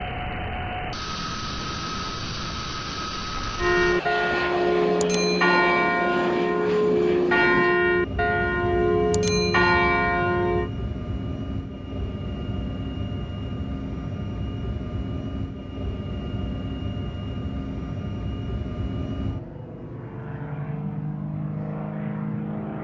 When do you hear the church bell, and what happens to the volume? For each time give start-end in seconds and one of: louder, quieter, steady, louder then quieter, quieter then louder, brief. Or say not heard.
3.5-10.7 steady.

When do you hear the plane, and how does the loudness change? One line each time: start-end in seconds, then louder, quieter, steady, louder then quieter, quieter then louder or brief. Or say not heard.
0.0-22.7 steady.